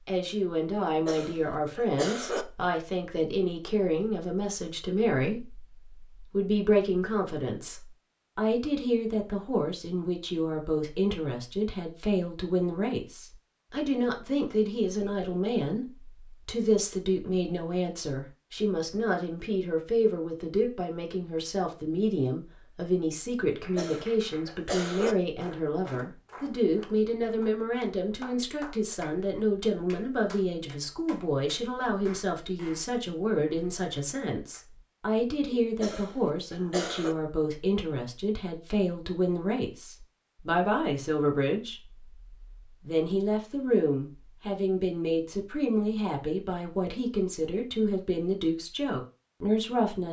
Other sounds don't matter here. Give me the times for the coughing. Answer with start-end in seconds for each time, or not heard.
0.8-2.5, 23.4-25.1, 35.5-37.1.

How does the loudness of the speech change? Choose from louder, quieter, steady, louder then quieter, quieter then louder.
steady.